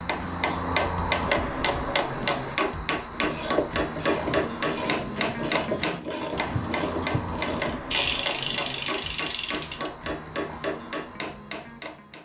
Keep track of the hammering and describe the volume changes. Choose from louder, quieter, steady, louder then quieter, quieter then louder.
quieter.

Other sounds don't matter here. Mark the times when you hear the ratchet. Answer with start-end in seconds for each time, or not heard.
3.1-9.9.